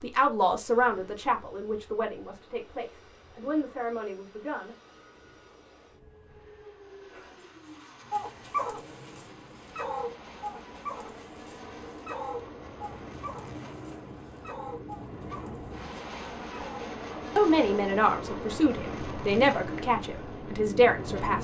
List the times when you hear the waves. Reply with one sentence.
The waves can't be heard in this clip.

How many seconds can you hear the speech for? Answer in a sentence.
The speech can be heard for 9 seconds in total.